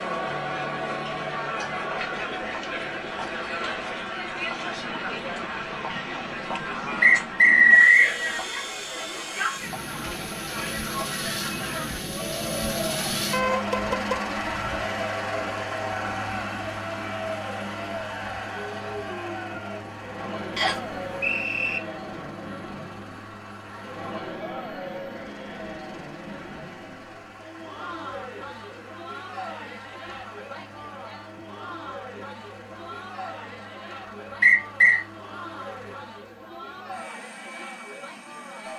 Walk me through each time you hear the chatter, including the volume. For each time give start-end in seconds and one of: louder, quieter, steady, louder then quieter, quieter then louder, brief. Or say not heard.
0.0-38.7 quieter.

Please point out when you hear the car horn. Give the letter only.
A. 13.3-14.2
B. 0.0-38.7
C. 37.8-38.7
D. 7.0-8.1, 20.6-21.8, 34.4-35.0
A.